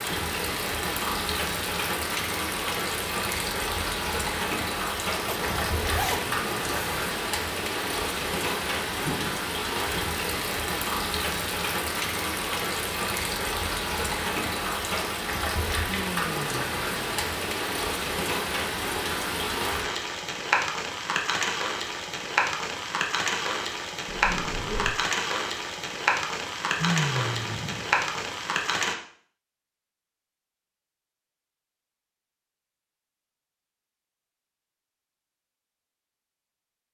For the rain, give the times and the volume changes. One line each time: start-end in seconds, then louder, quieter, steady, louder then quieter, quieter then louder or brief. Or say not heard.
0.0-28.9 steady.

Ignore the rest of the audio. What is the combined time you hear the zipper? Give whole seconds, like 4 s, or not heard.
3 s.